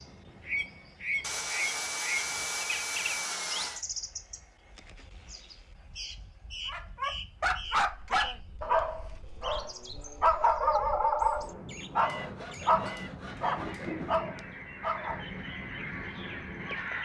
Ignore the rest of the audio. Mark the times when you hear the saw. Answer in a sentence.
You can hear the saw from 1.2 to 3.9 s and from 12.1 to 14.2 s.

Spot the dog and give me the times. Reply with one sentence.
You can hear the dog from 6.7 to 15.2 s.